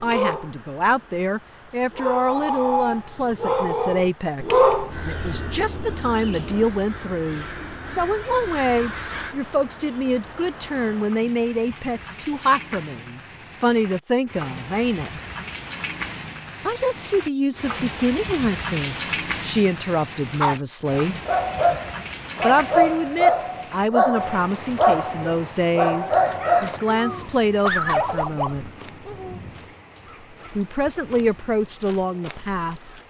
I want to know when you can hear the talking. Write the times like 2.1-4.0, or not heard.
0.0-15.1, 16.6-21.1, 22.4-28.6, 30.6-32.8.